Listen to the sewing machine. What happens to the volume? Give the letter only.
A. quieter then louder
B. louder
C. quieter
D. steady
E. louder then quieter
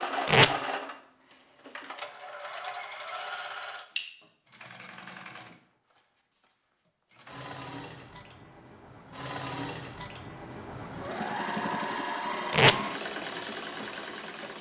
A.